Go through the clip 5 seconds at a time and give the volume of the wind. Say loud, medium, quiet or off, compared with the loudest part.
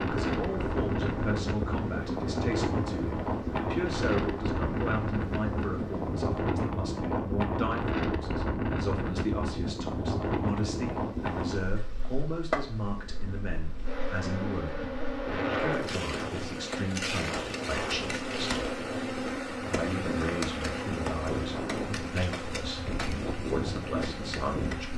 loud, loud, loud, medium, medium.